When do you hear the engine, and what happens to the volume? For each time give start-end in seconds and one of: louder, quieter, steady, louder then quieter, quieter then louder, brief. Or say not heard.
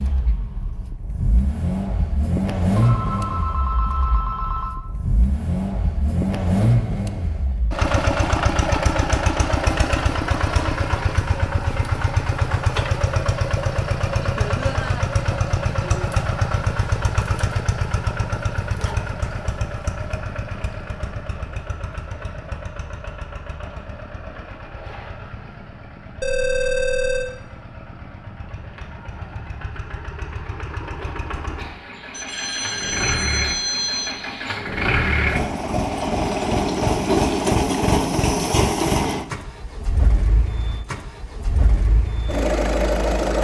0.0-43.3 quieter then louder.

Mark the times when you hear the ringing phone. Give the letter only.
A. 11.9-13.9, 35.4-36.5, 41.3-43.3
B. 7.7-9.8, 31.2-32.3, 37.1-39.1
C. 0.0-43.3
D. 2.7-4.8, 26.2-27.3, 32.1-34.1
D.